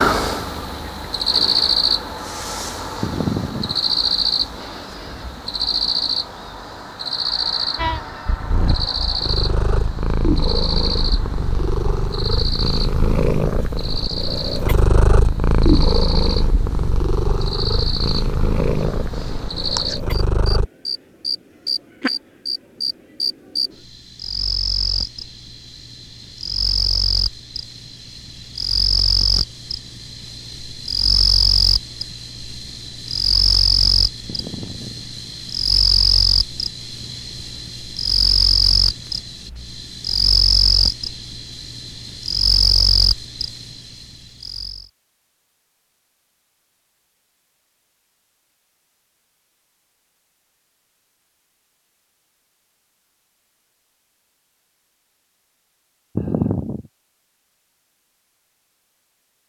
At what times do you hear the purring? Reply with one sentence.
The purring can be heard from 7.8 to 20.6 s.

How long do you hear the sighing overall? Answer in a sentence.
You can hear the sighing for 2 seconds altogether.